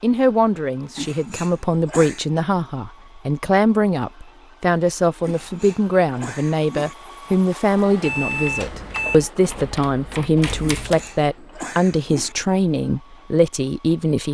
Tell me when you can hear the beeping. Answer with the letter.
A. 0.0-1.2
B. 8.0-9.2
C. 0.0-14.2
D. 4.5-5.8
B.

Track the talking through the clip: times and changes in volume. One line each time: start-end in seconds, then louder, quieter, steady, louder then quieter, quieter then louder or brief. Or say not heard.
0.0-14.2 steady.